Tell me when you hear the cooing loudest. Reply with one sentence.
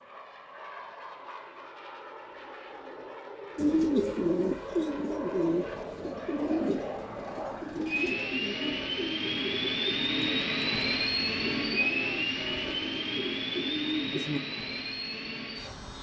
The loudest moment of the cooing is at 4 seconds.